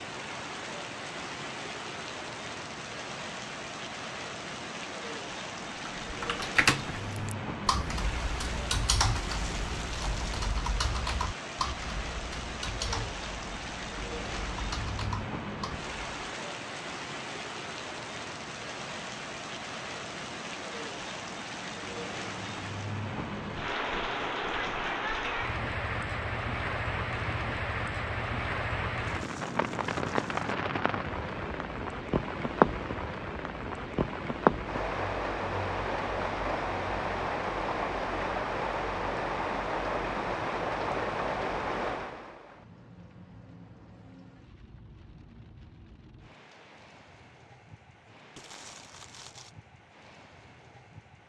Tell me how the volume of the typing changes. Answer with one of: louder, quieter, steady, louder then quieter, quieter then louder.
quieter.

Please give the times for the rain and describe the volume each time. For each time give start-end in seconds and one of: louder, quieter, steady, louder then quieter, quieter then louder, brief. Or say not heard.
0.0-51.2 louder then quieter.